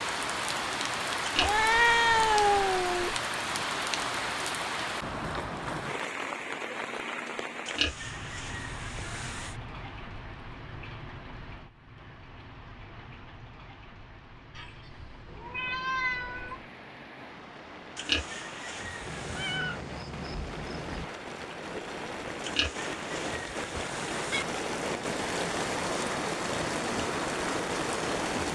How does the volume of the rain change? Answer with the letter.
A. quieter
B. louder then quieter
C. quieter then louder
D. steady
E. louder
C.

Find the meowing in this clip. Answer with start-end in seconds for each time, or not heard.
1.4-3.2, 14.6-16.6, 19.1-21.1.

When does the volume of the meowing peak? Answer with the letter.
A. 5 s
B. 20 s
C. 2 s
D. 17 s
C.